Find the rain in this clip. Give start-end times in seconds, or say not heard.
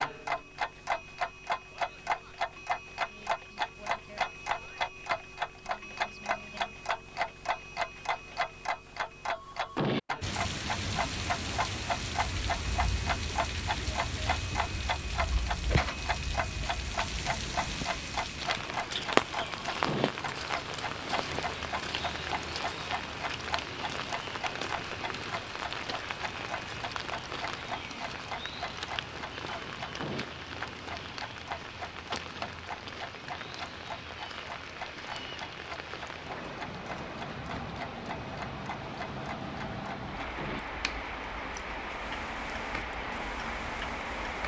10.2-44.4.